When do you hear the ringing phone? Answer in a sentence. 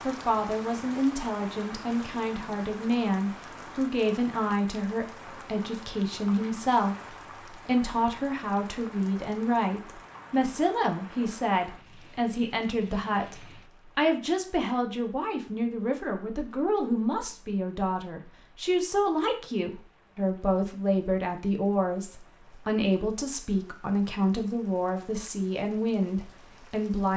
You can't hear the ringing phone here.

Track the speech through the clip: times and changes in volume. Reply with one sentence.
You can hear the speech from 0.1 to 27.1 s, at a steady volume.